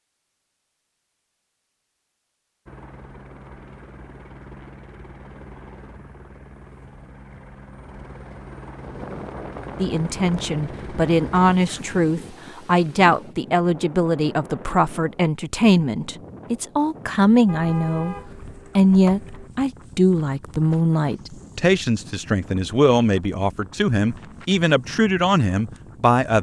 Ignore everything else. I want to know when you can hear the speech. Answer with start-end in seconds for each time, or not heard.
9.8-18.1, 18.8-26.3.